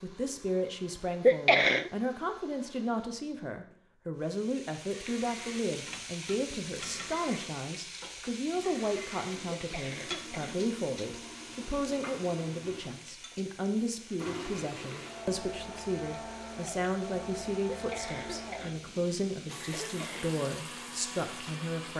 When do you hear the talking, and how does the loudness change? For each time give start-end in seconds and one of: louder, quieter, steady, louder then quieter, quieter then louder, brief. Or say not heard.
0.0-21.9 steady.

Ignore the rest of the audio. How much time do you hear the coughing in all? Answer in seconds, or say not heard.
4 s.